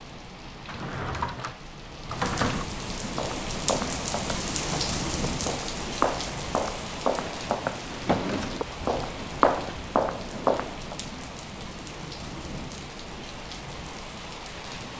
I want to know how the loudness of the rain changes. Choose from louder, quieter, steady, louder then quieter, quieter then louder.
louder then quieter.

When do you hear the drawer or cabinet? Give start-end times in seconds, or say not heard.
0.7-2.6, 7.8-8.7.